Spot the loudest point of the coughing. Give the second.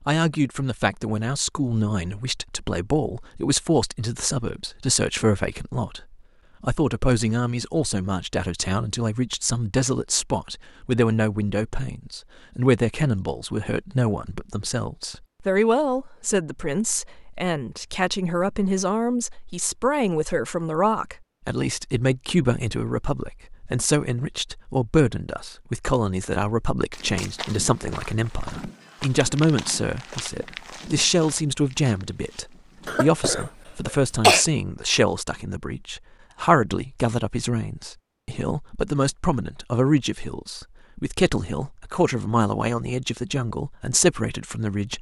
34 s.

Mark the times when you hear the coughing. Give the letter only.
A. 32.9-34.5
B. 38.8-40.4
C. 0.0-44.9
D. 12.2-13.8
A.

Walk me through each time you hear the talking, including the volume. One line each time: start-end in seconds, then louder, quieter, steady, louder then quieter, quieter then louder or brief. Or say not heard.
0.0-44.9 steady.